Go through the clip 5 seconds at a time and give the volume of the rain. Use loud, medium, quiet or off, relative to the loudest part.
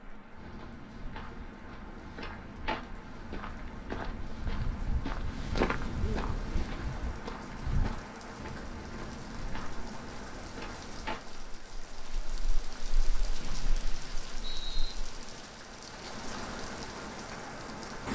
medium, medium, medium, loud.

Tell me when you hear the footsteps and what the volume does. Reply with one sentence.
You can hear the footsteps from 0.3 to 11.2 s, getting louder then quieter.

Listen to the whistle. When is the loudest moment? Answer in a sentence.
The loudest moment of the whistle is at 15 seconds.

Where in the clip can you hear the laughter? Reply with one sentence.
The laughter can't be heard in this clip.